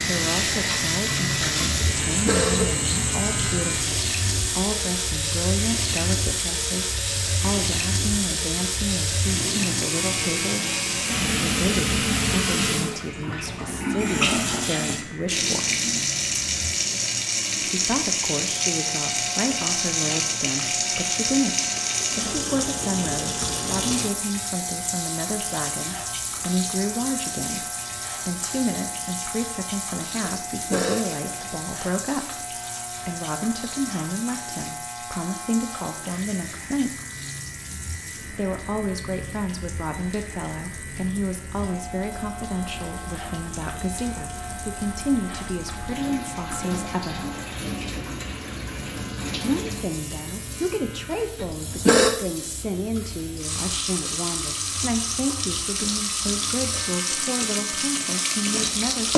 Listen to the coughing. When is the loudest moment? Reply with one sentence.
The volume of the coughing peaks at 52 seconds.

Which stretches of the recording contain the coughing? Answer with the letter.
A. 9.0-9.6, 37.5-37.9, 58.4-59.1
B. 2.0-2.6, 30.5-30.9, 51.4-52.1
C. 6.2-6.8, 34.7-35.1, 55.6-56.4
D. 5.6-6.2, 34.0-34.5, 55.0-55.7
B.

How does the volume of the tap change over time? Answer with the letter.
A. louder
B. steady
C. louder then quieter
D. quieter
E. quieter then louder
E.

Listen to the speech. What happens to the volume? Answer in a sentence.
The volume of the speech stays about the same.